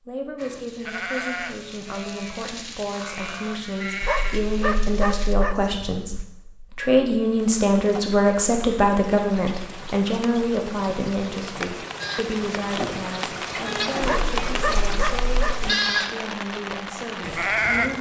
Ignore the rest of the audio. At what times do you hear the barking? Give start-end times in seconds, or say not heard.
4.0-5.6, 14.0-15.7.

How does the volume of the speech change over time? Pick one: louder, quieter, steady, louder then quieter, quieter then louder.
louder then quieter.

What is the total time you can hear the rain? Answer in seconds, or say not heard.
11 s.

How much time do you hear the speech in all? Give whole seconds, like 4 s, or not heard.
18 s.